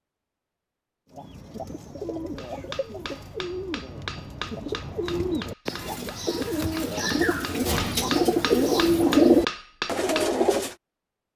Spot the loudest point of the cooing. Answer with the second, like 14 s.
9 s.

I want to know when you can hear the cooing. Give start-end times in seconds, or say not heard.
1.1-10.8.